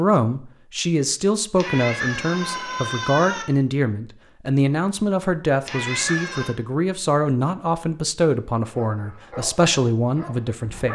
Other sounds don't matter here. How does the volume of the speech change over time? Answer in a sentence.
The volume of the speech stays about the same.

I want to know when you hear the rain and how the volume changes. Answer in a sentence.
You can't hear the rain here.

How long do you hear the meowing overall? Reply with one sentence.
You can hear the meowing for 3 seconds altogether.